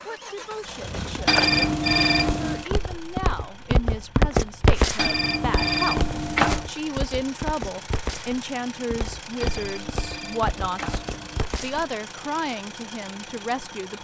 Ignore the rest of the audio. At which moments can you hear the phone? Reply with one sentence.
The phone can be heard from 1.2 to 2.7 s, from 5.0 to 6.7 s and from 9.4 to 11.4 s.